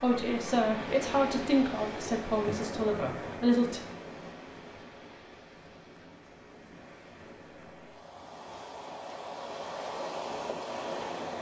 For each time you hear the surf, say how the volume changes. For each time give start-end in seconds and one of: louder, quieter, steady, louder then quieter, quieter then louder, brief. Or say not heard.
0.0-11.3 quieter then louder.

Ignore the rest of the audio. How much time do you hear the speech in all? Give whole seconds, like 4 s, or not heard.
4 s.